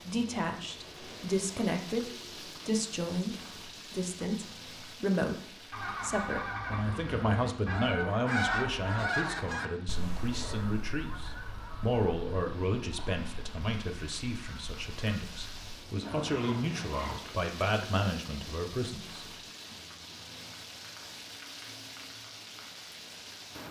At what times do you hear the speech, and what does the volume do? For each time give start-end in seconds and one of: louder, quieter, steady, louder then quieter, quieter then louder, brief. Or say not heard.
0.0-19.3 steady.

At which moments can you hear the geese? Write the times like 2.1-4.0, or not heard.
5.7-17.2.